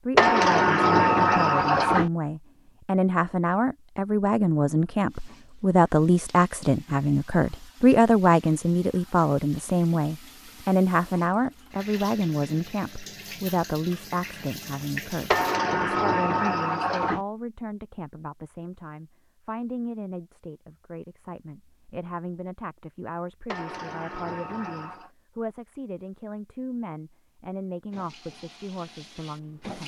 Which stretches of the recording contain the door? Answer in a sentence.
You can hear the door from 0.1 to 2.1 s, from 15.3 to 17.2 s and from 23.4 to 25.1 s.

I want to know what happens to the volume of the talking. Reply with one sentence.
The loudness of the talking goes down.